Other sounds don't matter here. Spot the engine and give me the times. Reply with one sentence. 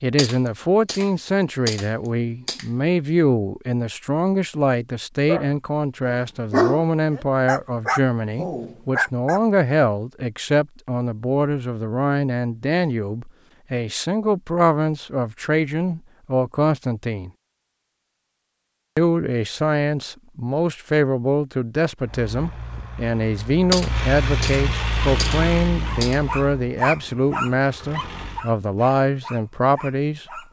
You can hear the engine from 22.0 to 28.4 s.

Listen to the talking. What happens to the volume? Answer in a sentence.
The loudness of the talking stays about the same.